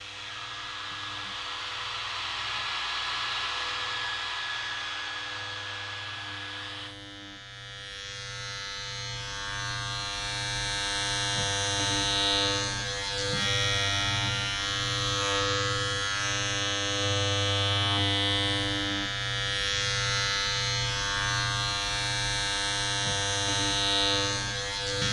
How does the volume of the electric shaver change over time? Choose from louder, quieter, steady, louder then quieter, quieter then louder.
louder.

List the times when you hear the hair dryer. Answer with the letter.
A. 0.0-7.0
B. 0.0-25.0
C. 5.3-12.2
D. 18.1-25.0
A.